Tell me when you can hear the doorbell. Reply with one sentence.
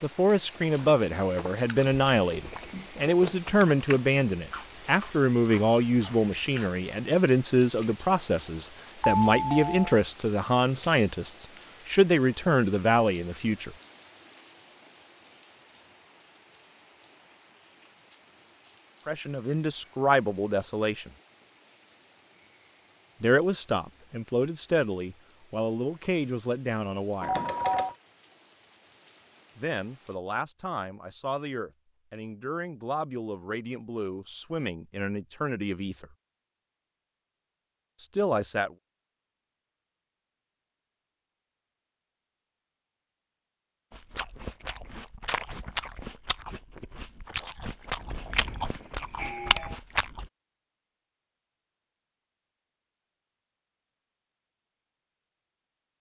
The doorbell can be heard from 9.0 to 9.8 s, from 27.2 to 27.9 s and from 48.4 to 49.8 s.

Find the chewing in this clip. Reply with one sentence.
You can hear the chewing from 0.5 to 6.8 s and from 43.9 to 50.3 s.